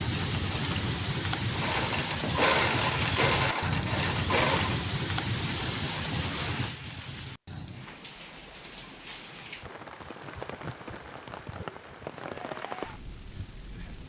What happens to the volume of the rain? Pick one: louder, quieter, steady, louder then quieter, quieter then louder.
quieter.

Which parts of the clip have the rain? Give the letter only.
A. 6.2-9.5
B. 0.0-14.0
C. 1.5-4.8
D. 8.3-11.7
B.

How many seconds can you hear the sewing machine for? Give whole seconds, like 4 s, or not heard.
3 s.